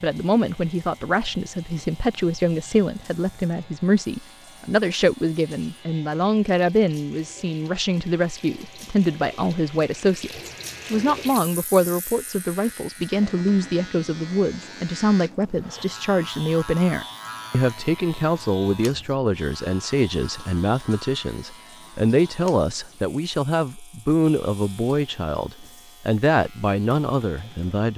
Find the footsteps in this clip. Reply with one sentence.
The footsteps can't be heard in this clip.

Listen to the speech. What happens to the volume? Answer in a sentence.
The volume of the speech stays about the same.